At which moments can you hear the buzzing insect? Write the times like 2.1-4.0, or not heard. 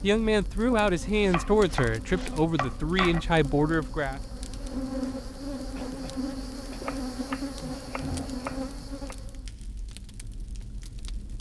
0.0-9.5.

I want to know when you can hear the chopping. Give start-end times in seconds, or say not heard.
1.1-3.2, 6.8-9.2.